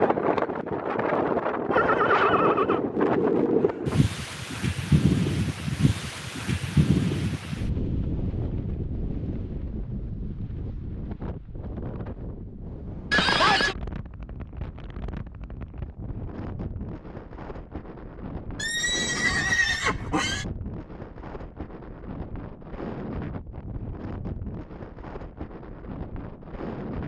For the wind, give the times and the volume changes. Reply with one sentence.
The wind can be heard from 0.0 to 27.0 s, getting quieter.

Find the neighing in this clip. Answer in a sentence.
The neighing can be heard from 1.7 to 2.8 s, from 13.1 to 13.8 s and from 18.6 to 20.4 s.